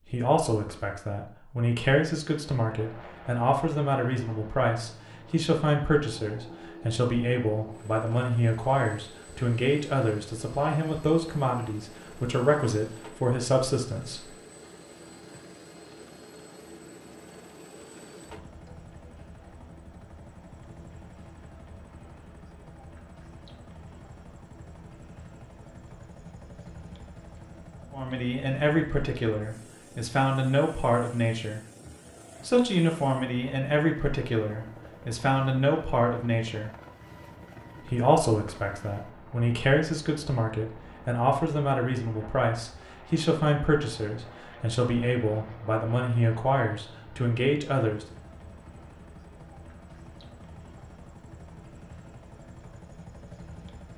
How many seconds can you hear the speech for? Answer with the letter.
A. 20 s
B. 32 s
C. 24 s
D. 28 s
B.